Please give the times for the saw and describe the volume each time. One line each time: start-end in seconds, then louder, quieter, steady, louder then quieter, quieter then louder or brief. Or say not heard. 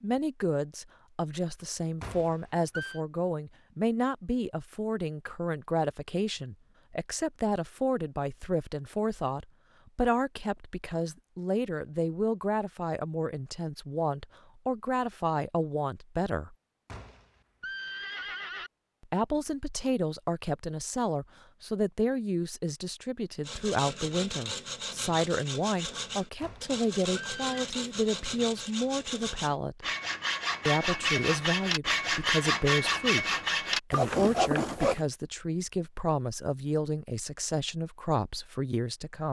23.4-35.0 louder.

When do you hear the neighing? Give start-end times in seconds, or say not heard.
2.0-3.0, 16.9-18.7, 26.4-27.7.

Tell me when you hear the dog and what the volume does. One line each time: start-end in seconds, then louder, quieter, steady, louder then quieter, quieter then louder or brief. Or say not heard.
not heard.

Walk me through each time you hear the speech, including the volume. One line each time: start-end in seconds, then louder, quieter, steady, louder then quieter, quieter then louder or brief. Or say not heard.
0.0-16.6 steady
19.0-29.9 steady
30.6-39.2 steady.